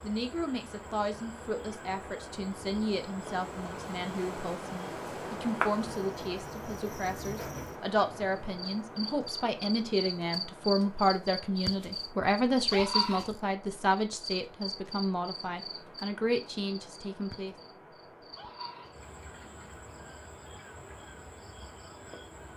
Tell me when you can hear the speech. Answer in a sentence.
The speech can be heard from 0.0 to 17.6 s.